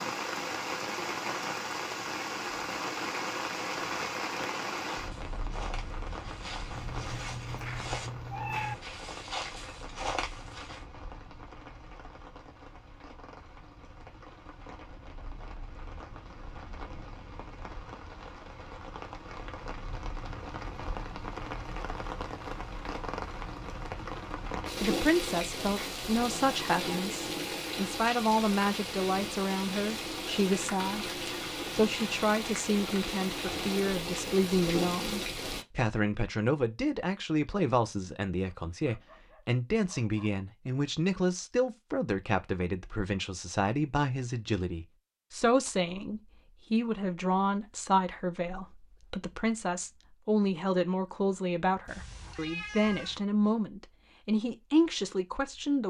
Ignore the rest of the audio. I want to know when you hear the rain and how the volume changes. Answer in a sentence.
You can hear the rain from 0.0 to 35.6 s, getting quieter then louder.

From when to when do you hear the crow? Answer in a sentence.
You can't hear the crow here.